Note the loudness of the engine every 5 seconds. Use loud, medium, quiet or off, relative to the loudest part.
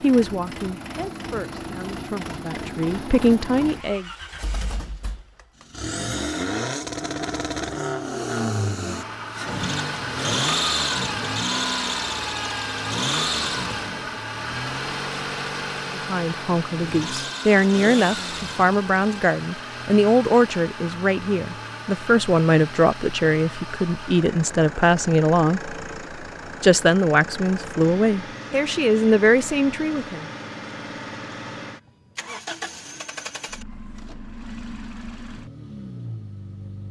medium, loud, loud, medium, medium, medium, medium, quiet.